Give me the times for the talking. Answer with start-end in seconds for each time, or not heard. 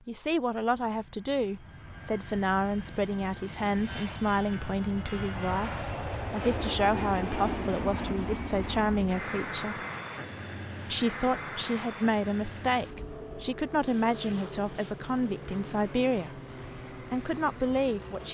0.1-9.8, 10.8-16.4, 17.0-18.2.